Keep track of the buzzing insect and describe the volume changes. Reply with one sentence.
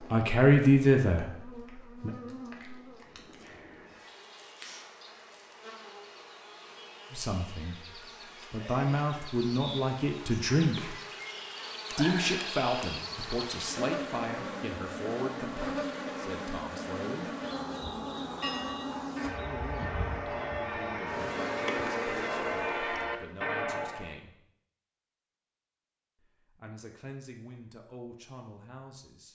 The volume of the buzzing insect goes up.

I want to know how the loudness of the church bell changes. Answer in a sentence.
The loudness of the church bell goes up.